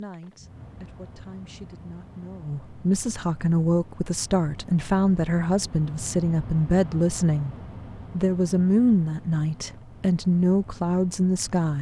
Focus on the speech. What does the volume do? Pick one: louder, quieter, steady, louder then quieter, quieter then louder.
louder.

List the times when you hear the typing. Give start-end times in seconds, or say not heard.
not heard.